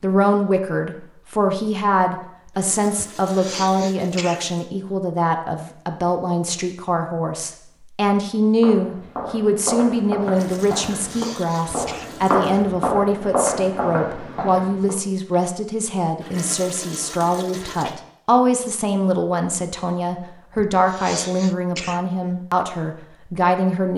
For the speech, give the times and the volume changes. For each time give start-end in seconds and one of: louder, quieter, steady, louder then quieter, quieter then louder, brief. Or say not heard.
0.0-23.9 steady.